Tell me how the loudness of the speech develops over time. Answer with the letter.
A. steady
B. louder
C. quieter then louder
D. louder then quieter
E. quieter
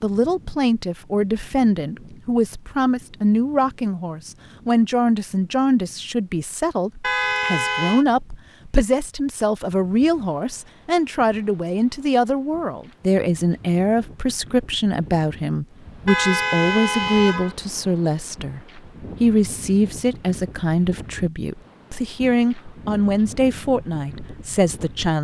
A.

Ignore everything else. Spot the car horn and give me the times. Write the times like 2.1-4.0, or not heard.
7.0-8.1, 16.1-17.6.